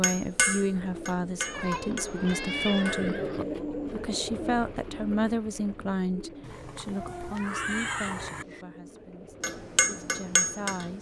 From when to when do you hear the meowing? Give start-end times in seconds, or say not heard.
1.4-3.0, 6.8-8.7.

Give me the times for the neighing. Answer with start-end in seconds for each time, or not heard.
1.9-3.5, 6.4-8.4.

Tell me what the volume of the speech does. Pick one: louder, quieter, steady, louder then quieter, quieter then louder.
quieter.